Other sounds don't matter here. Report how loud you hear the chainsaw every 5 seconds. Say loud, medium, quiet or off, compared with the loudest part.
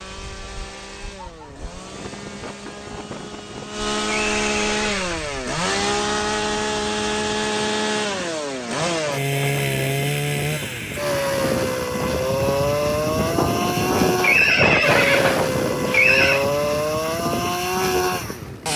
medium, loud, loud, loud.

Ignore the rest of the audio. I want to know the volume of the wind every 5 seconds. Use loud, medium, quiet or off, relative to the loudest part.
quiet, quiet, loud, loud.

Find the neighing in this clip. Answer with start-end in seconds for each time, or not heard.
4.2-5.2, 14.2-16.4.